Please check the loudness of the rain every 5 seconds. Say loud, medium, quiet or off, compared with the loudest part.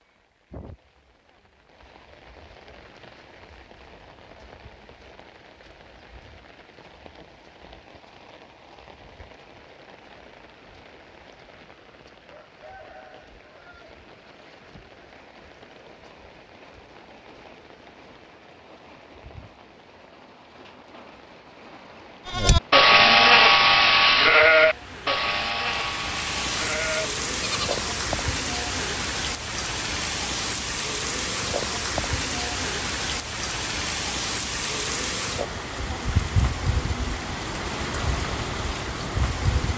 quiet, quiet, quiet, quiet, quiet, loud, loud, loud.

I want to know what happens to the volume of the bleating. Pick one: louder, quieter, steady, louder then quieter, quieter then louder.
quieter.